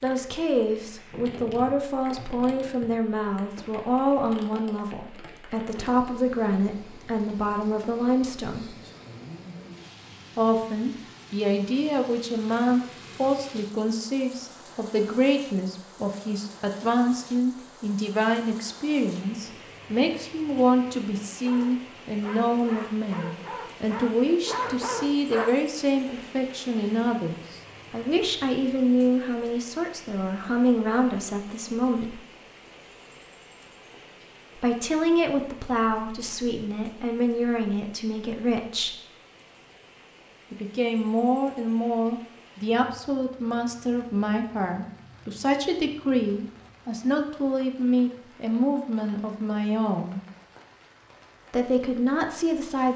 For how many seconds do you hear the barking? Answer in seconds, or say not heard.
4 s.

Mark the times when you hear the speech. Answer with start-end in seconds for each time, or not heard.
0.0-8.8, 10.3-32.2, 34.5-39.0, 40.5-50.2, 51.5-52.9.